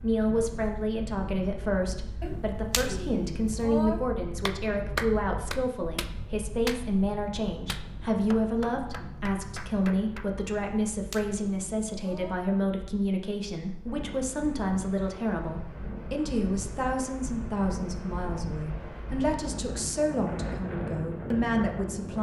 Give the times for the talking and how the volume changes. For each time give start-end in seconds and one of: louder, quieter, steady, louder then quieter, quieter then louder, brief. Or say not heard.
0.0-22.1 steady.